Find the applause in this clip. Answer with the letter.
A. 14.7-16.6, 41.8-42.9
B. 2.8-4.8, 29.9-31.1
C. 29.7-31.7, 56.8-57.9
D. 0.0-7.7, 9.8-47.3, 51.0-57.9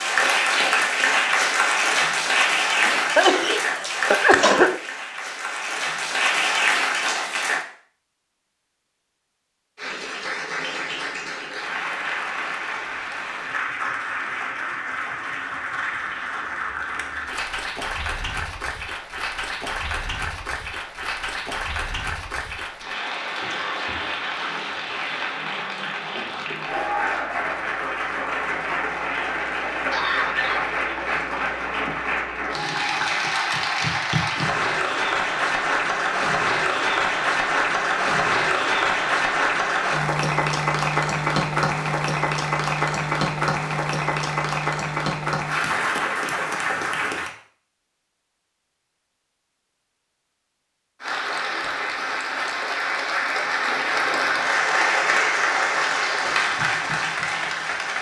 D.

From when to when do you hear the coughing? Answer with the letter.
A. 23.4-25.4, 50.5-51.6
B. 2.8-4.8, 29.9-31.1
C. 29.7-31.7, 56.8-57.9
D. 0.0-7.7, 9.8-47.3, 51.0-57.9
B.